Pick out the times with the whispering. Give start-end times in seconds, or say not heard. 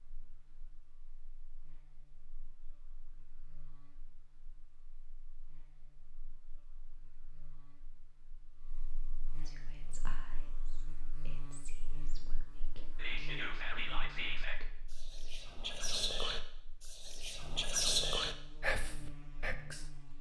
9.4-19.9.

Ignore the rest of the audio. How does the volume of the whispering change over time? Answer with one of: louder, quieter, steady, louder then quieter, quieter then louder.
louder.